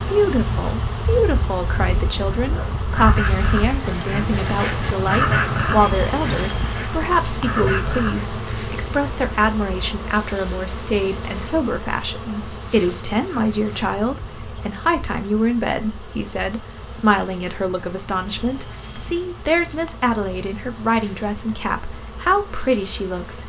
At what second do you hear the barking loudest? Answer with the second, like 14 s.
5 s.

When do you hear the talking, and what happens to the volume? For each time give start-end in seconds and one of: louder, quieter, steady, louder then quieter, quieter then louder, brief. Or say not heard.
0.0-23.4 steady.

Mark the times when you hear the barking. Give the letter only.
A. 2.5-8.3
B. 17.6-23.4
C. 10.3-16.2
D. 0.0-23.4
A.